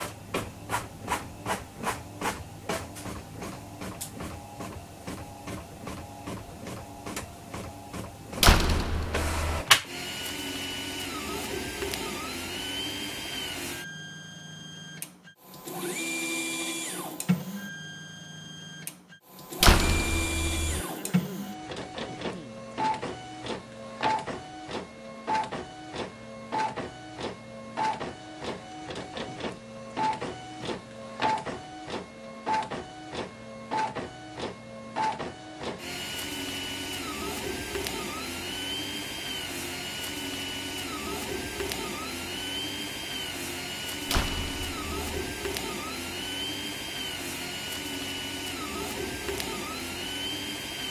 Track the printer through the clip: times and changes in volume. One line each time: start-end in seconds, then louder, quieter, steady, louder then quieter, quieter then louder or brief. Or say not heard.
0.0-50.8 steady.